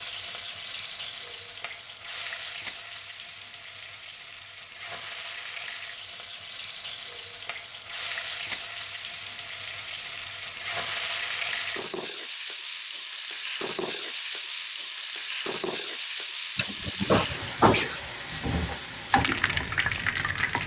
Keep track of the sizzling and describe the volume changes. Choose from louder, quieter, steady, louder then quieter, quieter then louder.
louder.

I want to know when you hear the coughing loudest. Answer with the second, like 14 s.
18 s.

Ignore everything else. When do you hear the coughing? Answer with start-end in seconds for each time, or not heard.
16.6-18.0.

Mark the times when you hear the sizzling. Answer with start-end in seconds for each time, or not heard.
0.0-20.6.